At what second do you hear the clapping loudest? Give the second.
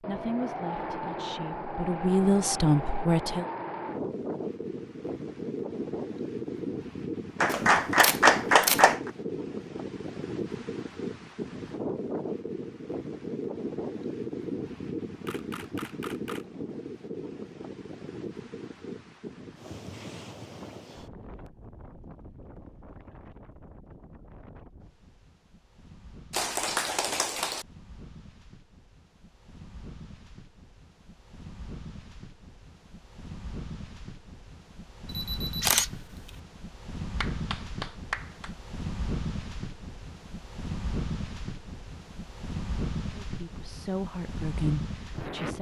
8 s.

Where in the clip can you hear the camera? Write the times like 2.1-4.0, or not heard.
7.5-8.9, 15.2-16.4, 35.0-36.3.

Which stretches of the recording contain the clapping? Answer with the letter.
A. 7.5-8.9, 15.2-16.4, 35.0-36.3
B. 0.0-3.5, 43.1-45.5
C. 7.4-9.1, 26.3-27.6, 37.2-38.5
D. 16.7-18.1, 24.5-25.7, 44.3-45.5
C.